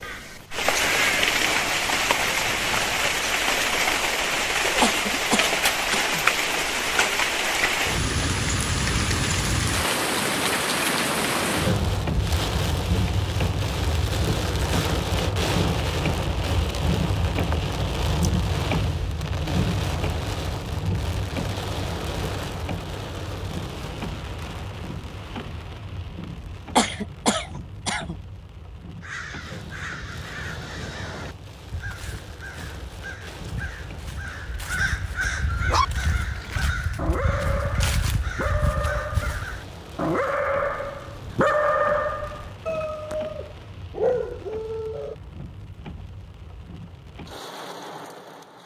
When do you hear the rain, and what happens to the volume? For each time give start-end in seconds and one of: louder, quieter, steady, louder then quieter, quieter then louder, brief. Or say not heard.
0.0-48.6 quieter.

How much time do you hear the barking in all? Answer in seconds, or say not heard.
10 s.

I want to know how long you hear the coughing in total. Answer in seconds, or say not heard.
3 s.